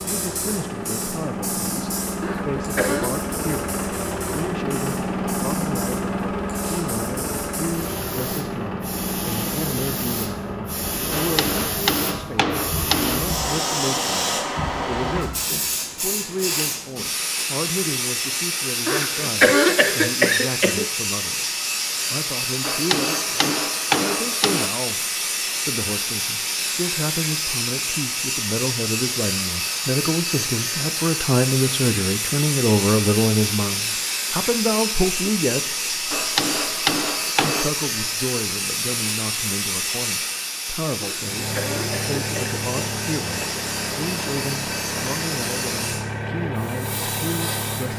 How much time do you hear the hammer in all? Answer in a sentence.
The hammer can be heard for 6 seconds in total.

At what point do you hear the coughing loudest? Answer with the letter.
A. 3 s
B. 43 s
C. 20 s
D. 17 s
C.